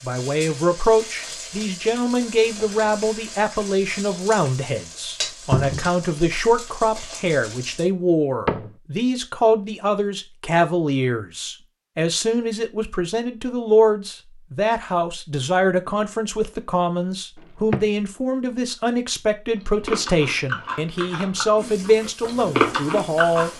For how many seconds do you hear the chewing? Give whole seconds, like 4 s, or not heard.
4 s.